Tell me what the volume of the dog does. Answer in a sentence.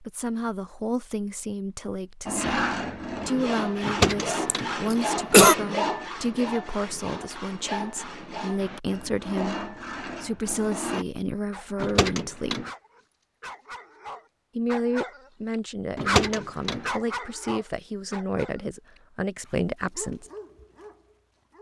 The loudness of the dog goes up, then down.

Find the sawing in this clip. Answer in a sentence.
The sawing can be heard from 2.2 to 11.1 s.